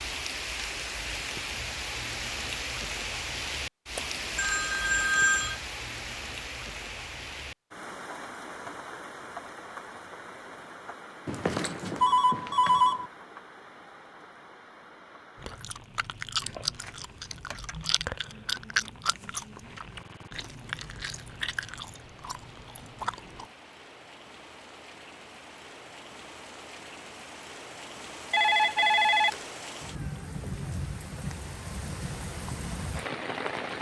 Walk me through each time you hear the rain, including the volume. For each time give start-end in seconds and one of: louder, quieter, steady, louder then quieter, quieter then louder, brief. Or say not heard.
0.0-33.7 quieter then louder.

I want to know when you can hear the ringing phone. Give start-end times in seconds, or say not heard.
4.0-5.6, 11.2-13.1, 28.3-29.4.